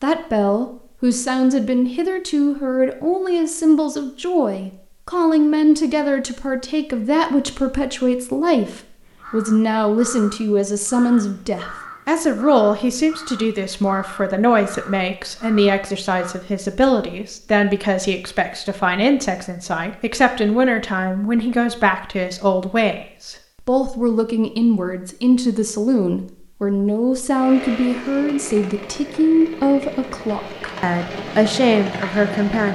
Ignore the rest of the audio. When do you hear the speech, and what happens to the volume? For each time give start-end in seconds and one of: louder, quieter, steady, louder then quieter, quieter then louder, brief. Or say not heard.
0.0-32.7 steady.